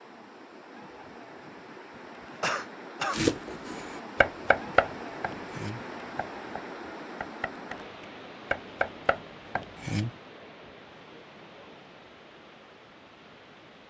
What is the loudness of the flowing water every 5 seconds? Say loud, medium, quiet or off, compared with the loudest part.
loud, loud, medium.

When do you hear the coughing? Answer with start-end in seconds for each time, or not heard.
2.4-3.2.